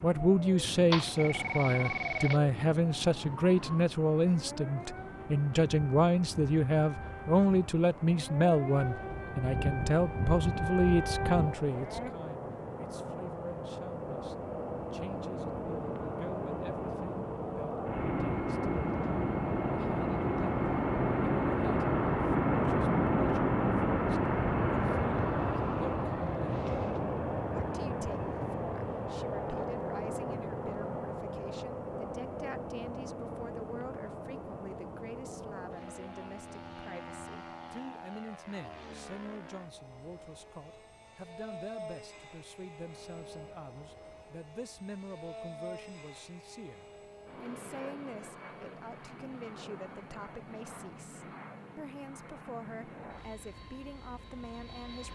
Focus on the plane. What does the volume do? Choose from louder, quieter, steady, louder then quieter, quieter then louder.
louder then quieter.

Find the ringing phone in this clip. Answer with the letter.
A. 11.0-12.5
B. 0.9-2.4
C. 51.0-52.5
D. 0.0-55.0
B.